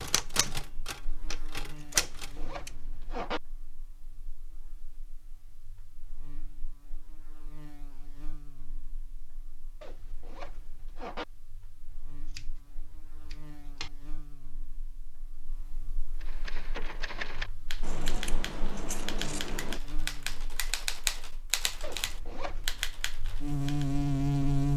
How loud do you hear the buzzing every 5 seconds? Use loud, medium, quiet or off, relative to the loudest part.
quiet, quiet, quiet, quiet, loud.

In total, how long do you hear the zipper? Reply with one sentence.
You can hear the zipper for 4 seconds altogether.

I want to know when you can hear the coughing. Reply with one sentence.
The coughing can't be heard in this clip.